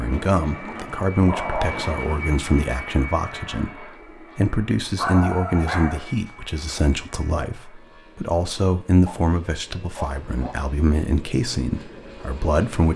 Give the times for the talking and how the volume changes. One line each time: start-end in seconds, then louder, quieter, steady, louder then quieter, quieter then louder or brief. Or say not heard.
0.0-12.9 steady.